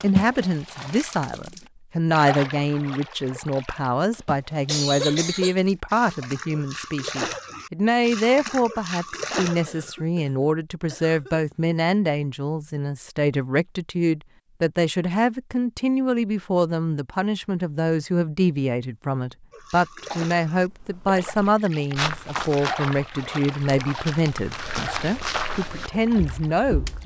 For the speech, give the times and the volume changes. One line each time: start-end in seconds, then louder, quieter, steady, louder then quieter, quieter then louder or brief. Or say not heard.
0.0-27.0 steady.